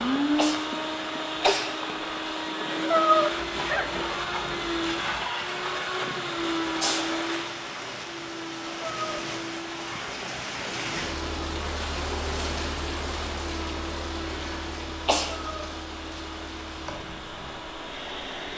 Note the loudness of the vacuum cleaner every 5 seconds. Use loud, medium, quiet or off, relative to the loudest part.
loud, loud, medium, medium.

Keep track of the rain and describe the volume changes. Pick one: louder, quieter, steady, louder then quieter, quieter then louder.
louder then quieter.